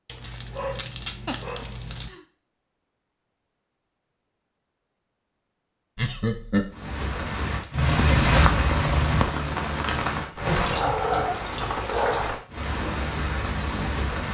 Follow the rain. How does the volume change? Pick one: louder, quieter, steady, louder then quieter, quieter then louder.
quieter.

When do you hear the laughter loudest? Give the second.
6 s.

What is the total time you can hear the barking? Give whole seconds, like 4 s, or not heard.
4 s.